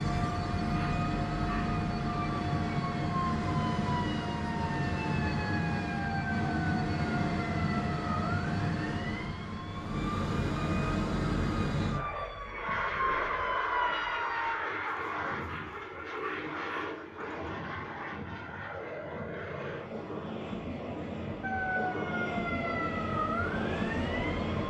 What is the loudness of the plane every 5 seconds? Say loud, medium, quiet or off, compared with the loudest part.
loud, loud, loud, medium, loud.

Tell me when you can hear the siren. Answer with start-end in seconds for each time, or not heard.
0.0-14.6, 21.4-24.6.